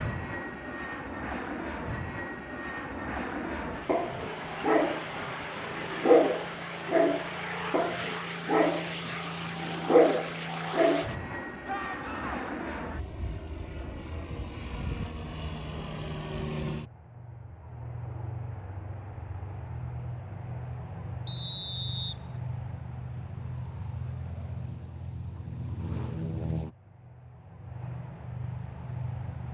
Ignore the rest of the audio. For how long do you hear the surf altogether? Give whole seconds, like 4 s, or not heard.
not heard.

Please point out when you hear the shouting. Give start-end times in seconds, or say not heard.
11.7-12.5.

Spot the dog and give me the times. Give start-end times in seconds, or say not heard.
3.9-11.3.